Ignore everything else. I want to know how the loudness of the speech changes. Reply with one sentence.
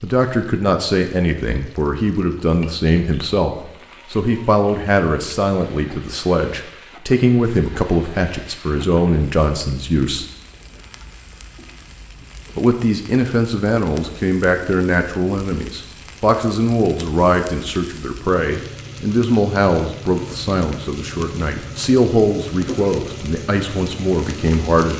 The loudness of the speech stays about the same.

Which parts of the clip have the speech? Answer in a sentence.
The speech can be heard from 0.0 to 10.2 s and from 12.6 to 24.9 s.